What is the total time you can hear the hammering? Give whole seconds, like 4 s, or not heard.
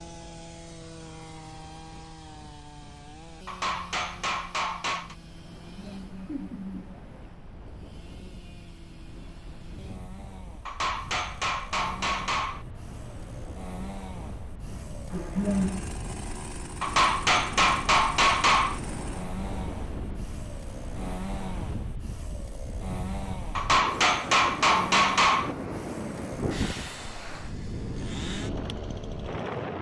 8 s.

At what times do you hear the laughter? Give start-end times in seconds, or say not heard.
5.7-7.2, 15.1-15.8.